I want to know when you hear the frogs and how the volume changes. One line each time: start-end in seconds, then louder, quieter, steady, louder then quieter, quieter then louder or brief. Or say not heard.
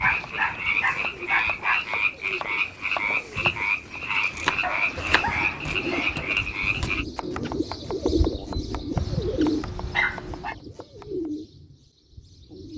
0.0-7.0 steady.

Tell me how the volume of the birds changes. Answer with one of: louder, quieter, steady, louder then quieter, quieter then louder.
louder then quieter.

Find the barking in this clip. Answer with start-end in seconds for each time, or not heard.
0.0-1.9, 4.6-6.3, 8.9-10.6.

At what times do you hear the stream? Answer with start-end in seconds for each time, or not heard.
not heard.